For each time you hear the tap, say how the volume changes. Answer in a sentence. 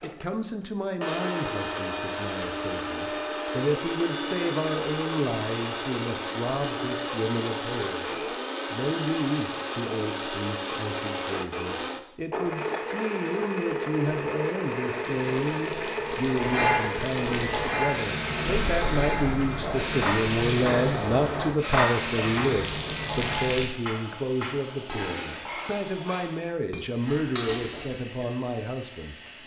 The tap can be heard from 14.9 to 23.6 s, getting louder.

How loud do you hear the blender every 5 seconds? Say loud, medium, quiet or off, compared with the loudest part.
loud, loud, loud, loud, loud, quiet.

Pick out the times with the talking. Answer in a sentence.
The talking can be heard from 0.0 to 29.1 s.